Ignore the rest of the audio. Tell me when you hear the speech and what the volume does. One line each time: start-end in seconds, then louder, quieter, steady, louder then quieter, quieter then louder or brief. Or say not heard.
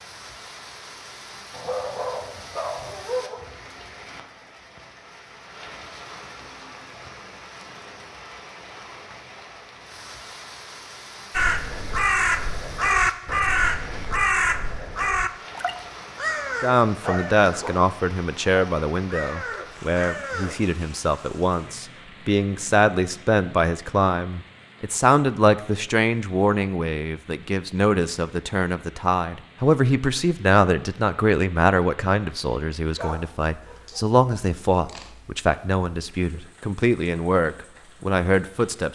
16.6-38.9 steady.